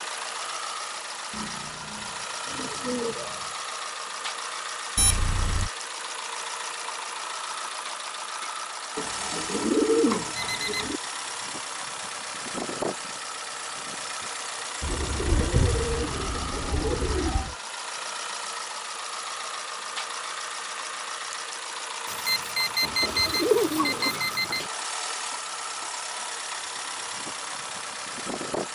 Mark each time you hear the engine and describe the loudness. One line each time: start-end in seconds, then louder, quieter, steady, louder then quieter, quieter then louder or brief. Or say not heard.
0.0-28.7 steady.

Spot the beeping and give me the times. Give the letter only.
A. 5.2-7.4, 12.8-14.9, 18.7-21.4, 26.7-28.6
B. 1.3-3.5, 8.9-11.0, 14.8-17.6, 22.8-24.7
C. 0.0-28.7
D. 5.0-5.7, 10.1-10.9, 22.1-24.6
D.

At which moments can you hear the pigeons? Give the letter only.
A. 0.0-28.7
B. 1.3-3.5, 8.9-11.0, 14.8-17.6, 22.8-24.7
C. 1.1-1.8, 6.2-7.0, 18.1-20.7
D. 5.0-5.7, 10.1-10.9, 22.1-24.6
B.